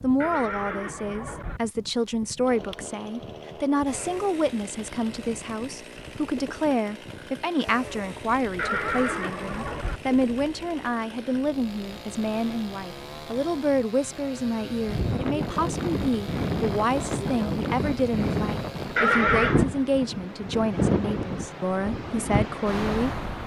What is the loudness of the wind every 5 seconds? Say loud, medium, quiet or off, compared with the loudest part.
quiet, quiet, quiet, loud, loud.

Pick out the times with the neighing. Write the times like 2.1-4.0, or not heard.
0.2-1.6, 8.6-10.0, 18.9-19.6.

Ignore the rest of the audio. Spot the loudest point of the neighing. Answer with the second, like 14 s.
19 s.